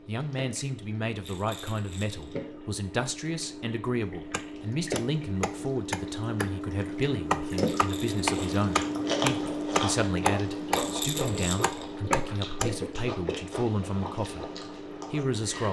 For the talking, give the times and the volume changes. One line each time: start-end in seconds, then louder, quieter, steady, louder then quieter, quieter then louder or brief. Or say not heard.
0.1-14.4 steady
15.1-15.6 brief.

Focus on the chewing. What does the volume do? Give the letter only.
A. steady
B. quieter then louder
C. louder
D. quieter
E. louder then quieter
D.